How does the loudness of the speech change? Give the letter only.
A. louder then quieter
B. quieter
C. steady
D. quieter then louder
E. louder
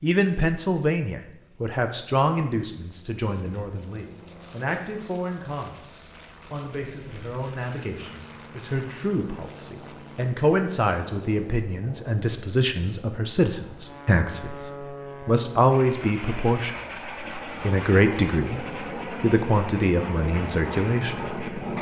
D.